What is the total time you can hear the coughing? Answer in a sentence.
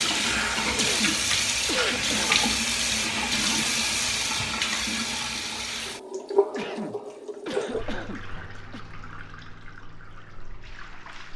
You can hear the coughing for 4 seconds altogether.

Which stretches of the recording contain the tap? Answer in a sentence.
The tap can be heard from 0.0 to 11.3 s.